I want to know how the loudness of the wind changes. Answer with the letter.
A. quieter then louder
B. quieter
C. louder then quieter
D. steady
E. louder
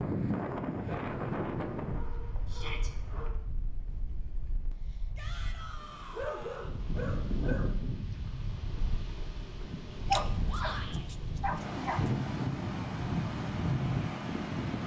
A.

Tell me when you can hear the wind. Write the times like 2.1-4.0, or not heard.
0.0-14.8.